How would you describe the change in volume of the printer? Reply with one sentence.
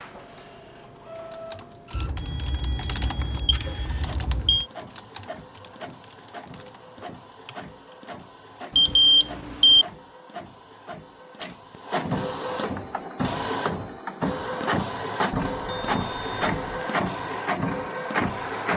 The volume of the printer goes up.